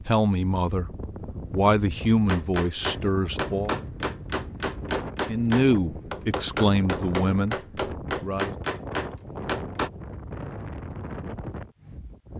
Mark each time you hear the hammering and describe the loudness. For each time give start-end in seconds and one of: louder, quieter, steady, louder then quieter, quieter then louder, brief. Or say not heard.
2.2-9.9 steady.